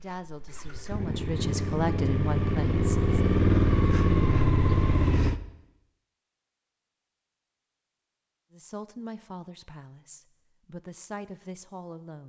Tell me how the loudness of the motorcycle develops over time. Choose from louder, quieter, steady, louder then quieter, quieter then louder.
louder.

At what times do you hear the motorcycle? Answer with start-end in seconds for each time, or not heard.
0.0-5.4.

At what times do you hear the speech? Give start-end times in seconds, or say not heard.
0.0-3.1, 8.5-12.2.